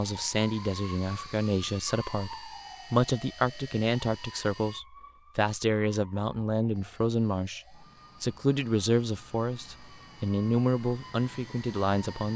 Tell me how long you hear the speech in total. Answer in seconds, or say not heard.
12 s.